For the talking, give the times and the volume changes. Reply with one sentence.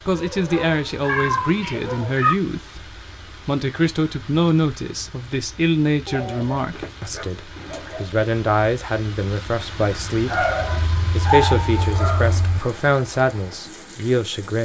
You can hear the talking from 0.1 to 14.6 s, at a steady volume.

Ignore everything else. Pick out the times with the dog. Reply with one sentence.
The dog can be heard from 0.1 to 2.3 s, from 6.0 to 8.2 s and from 10.2 to 12.3 s.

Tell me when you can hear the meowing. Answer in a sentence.
The meowing can be heard from 1.0 to 2.4 s, from 6.8 to 8.0 s and from 10.6 to 12.6 s.